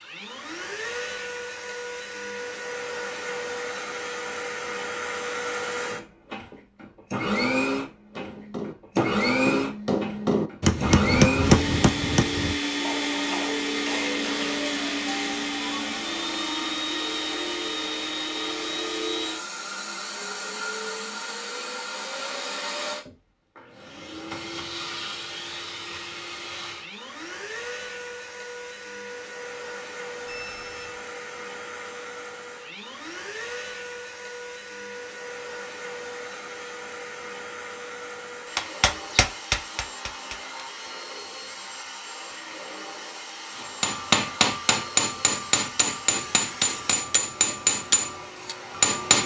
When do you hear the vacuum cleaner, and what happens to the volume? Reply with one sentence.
You can hear the vacuum cleaner from 0.0 to 49.2 s, getting quieter.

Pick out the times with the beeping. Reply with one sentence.
You can hear the beeping from 30.2 to 31.0 s.